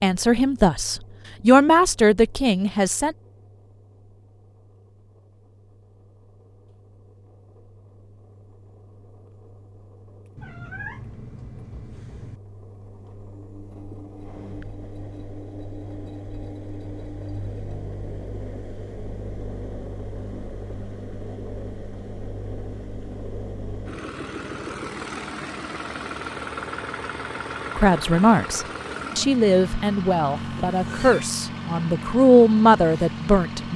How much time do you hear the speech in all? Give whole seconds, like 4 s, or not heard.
9 s.